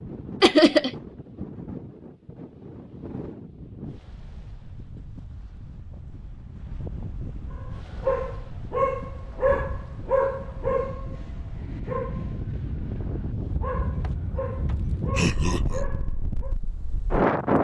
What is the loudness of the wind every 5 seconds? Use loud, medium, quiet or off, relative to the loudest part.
quiet, quiet, medium, loud.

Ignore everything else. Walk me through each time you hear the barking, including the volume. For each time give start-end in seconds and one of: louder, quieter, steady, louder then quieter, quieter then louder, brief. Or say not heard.
7.5-16.6 quieter.